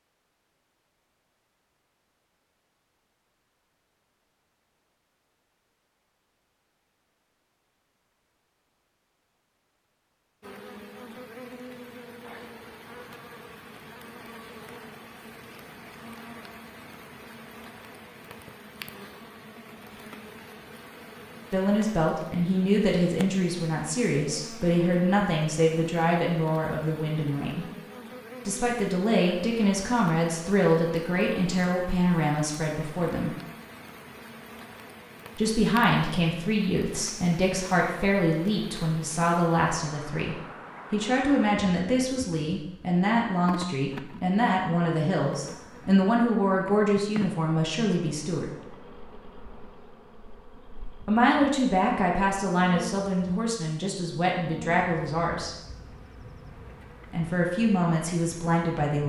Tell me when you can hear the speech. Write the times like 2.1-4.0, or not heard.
21.5-27.6, 28.4-33.4, 35.4-48.5, 51.0-55.5, 57.1-59.0.